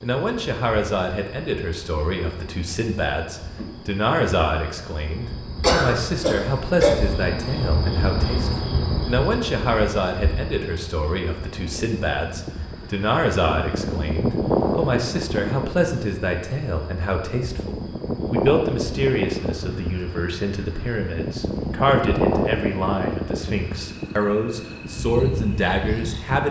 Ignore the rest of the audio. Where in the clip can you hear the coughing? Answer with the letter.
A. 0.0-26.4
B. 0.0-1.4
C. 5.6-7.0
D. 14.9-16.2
C.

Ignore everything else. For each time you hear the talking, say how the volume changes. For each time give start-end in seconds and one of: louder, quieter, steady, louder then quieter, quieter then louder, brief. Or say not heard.
0.0-26.4 steady.